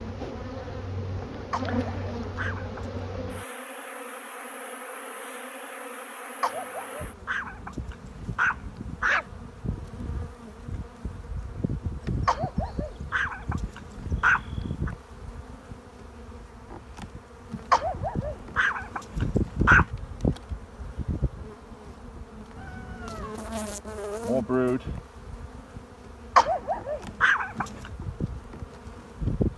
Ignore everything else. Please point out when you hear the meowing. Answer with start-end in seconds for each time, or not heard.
22.6-23.4.